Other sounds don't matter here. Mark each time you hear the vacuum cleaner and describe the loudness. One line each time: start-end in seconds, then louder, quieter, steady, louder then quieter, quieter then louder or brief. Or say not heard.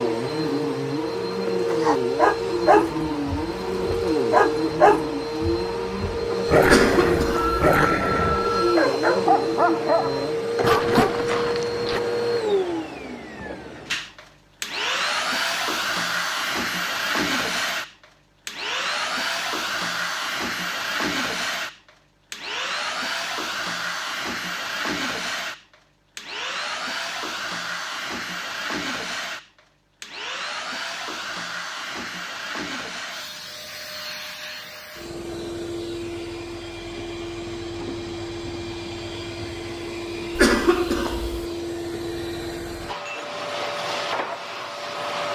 0.0-45.3 quieter.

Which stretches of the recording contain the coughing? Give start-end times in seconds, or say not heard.
6.7-7.6, 40.4-41.5.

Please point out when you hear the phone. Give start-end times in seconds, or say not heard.
7.2-8.8.